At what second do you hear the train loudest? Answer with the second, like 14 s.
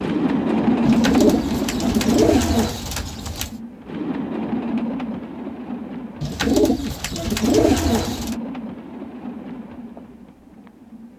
1 s.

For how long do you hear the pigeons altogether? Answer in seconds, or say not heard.
5 s.